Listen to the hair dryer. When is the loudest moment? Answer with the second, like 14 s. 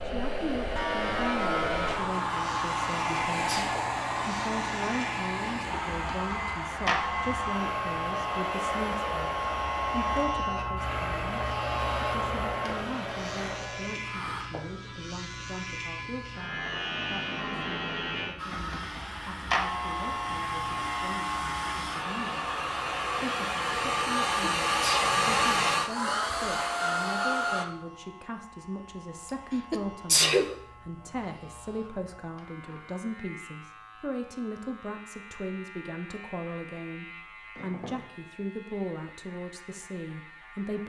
25 s.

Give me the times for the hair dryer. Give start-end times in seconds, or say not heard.
0.0-14.4, 18.4-27.6.